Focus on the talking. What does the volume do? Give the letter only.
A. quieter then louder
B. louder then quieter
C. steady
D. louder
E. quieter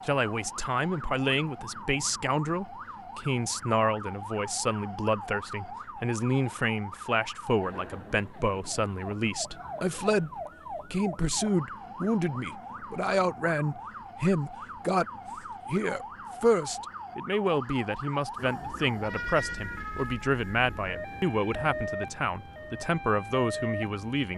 C.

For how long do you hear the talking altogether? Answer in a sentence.
You can hear the talking for 24 seconds altogether.